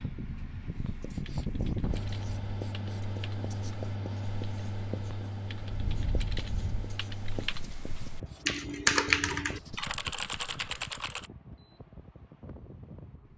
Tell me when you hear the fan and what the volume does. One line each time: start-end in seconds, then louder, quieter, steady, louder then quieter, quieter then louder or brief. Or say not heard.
0.0-13.3 quieter.